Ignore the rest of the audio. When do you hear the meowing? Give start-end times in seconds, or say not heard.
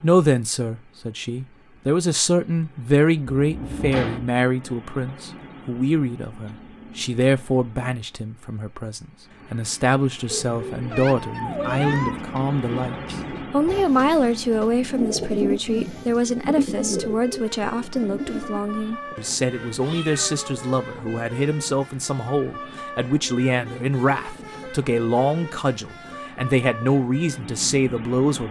10.9-12.2, 19.6-21.1.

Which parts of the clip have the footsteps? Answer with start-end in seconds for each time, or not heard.
not heard.